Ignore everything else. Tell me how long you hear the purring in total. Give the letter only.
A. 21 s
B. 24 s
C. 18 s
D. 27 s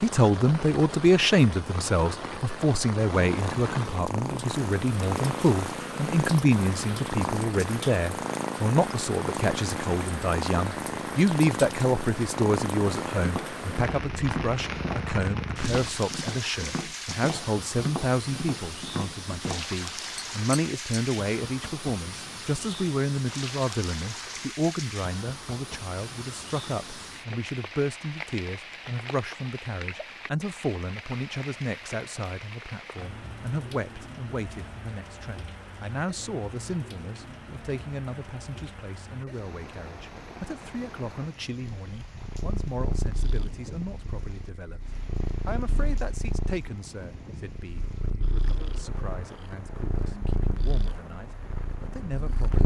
B.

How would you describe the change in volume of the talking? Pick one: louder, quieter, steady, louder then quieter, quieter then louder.
quieter.